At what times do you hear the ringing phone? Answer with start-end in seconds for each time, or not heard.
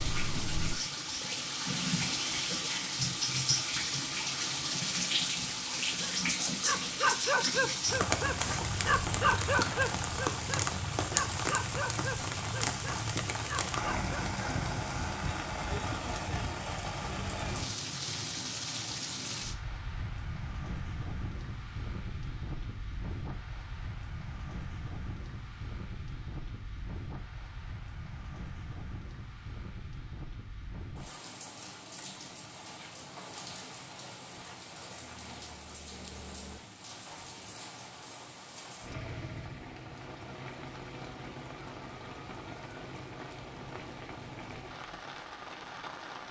not heard.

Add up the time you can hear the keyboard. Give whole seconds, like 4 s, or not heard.
not heard.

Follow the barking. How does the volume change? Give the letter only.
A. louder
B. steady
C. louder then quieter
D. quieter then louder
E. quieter
E.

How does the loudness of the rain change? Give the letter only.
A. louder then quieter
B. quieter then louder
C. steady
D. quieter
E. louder
D.